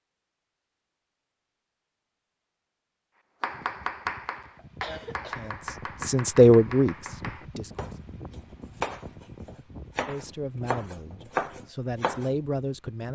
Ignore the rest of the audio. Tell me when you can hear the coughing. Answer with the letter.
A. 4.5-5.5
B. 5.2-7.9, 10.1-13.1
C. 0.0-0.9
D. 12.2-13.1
A.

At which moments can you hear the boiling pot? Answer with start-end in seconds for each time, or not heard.
not heard.